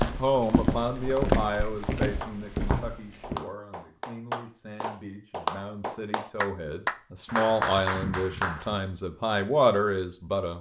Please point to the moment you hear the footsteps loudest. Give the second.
1 s.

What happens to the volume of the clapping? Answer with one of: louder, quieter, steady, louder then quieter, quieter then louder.
louder.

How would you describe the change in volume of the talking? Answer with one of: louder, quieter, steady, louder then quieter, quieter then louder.
quieter then louder.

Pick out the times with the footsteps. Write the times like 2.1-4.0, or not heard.
0.0-3.4.